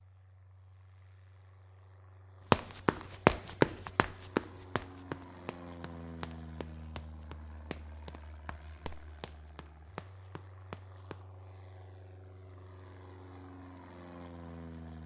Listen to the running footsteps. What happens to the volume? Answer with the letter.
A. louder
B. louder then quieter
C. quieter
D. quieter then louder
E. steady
C.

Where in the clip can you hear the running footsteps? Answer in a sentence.
The running footsteps can be heard from 2.5 to 11.2 s.